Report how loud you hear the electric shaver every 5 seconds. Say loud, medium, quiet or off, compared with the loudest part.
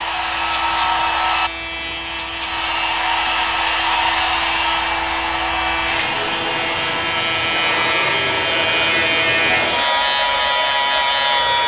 medium, loud, loud.